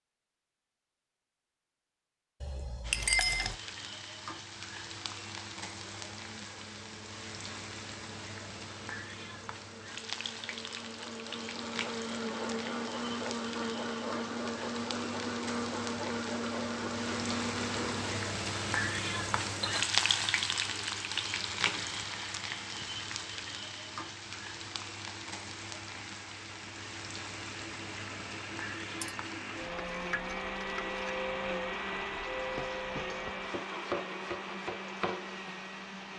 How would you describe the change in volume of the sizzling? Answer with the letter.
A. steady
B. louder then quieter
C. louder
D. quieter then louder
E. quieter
B.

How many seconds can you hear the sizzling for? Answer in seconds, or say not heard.
33 s.